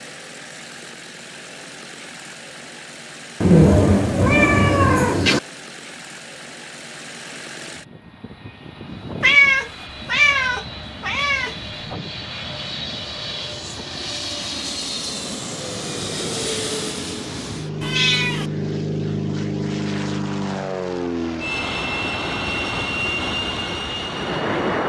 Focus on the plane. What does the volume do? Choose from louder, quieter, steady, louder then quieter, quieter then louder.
louder.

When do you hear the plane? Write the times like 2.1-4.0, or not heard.
0.0-24.8.